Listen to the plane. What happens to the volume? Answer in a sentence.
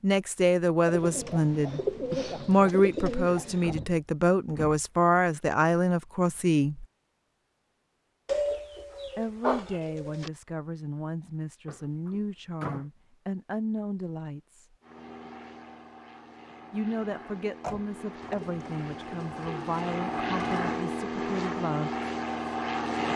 The volume of the plane goes up.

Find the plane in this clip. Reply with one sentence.
You can hear the plane from 14.8 to 23.1 s.